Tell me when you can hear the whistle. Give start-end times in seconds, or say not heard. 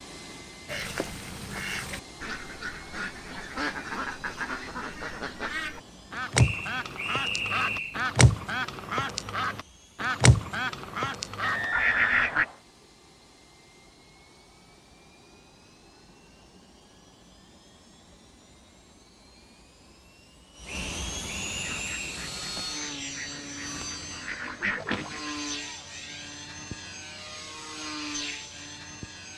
6.3-8.0, 11.4-12.6, 20.6-22.2.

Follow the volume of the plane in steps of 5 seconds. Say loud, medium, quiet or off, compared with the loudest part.
medium, quiet, quiet, quiet, loud, loud.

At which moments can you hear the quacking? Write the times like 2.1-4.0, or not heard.
0.7-12.4, 21.6-25.4.